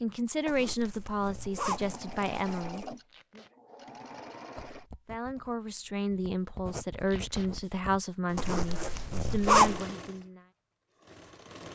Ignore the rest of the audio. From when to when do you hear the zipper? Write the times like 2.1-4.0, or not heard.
0.5-3.0, 8.3-9.8.